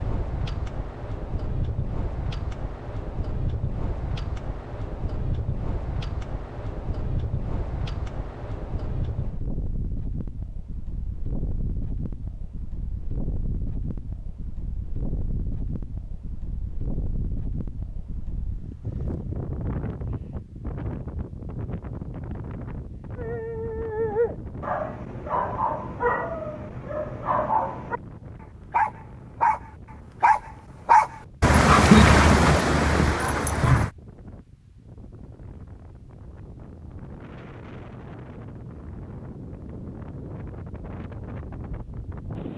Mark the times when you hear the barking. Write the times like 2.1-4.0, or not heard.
23.1-28.0, 28.7-29.6, 30.2-33.9.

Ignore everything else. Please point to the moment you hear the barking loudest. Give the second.
32 s.